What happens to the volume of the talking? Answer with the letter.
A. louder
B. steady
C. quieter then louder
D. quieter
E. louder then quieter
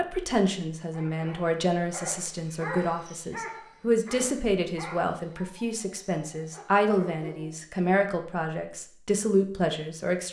B.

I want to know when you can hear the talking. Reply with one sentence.
The talking can be heard from 0.0 to 10.2 s.